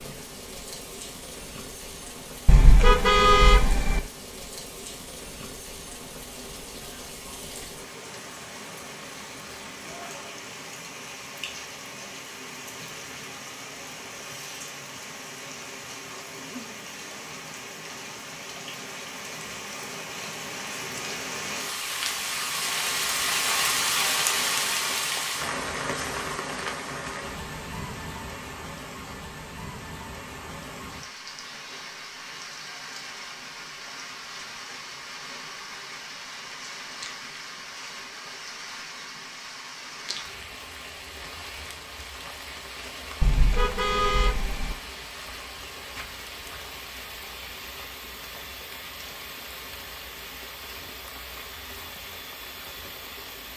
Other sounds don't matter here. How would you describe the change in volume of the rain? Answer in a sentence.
The loudness of the rain goes up, then down.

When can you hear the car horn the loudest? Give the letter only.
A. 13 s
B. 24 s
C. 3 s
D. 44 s
C.